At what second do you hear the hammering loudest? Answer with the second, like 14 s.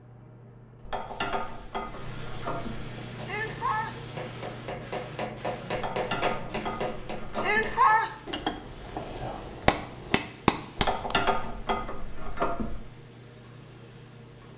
8 s.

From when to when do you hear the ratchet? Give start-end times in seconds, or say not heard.
0.8-2.9, 5.8-7.8, 10.8-12.8.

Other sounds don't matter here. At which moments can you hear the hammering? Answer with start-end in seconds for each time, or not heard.
3.0-11.2.